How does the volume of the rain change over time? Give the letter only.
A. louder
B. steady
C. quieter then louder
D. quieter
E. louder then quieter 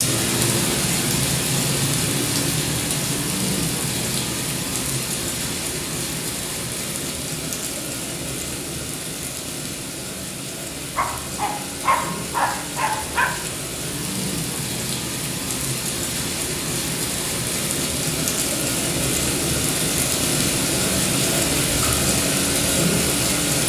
C.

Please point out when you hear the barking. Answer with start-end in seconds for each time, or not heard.
10.8-13.3.